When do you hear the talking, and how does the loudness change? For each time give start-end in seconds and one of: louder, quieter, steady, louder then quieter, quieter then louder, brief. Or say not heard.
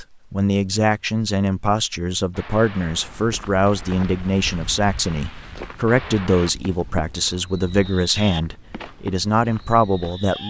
0.0-10.4 steady.